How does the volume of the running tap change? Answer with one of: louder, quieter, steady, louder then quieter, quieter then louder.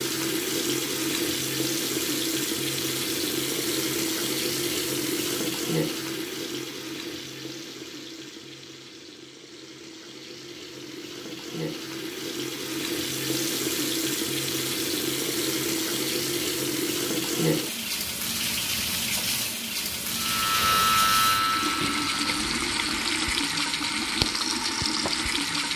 quieter then louder.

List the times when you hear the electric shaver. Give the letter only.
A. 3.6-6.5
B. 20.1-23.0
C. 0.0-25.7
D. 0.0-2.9
B.